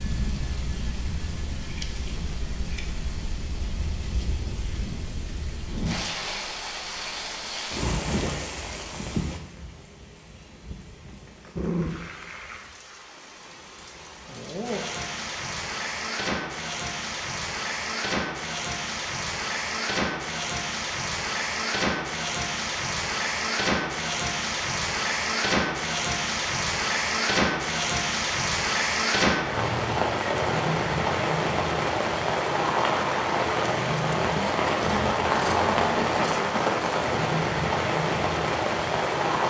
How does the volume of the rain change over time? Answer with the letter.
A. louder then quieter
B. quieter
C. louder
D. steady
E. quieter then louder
C.